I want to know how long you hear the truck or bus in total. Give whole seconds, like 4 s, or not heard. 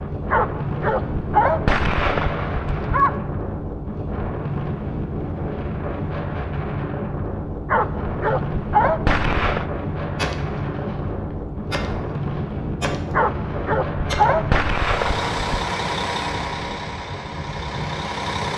4 s.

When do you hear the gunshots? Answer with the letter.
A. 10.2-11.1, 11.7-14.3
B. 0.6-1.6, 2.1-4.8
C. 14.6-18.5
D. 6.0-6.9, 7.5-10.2
A.